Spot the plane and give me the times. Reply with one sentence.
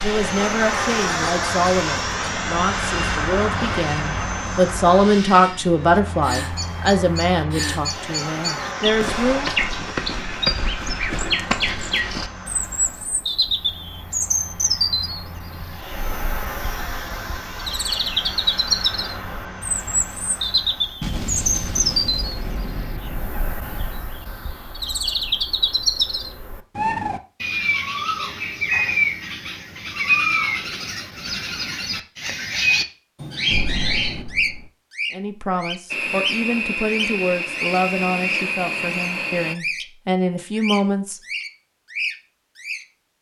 The plane can be heard from 0.0 to 21.1 s and from 35.9 to 39.5 s.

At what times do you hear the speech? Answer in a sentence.
You can hear the speech from 0.0 to 9.5 s and from 35.1 to 41.2 s.